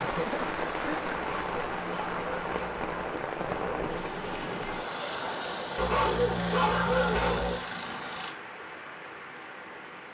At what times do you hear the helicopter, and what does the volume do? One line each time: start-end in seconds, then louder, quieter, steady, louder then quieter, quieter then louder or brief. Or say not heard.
3.5-8.3 steady.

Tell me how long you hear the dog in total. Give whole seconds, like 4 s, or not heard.
4 s.